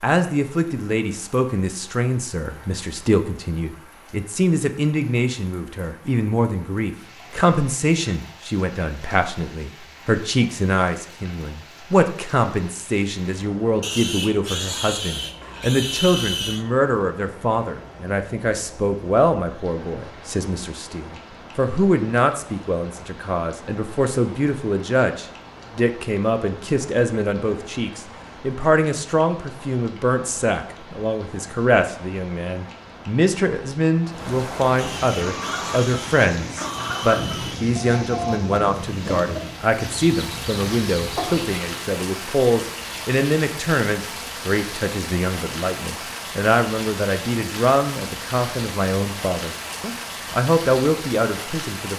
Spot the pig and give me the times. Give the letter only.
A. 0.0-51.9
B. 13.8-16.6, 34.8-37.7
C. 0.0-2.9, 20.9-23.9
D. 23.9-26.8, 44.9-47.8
B.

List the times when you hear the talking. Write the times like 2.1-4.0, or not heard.
0.0-51.9.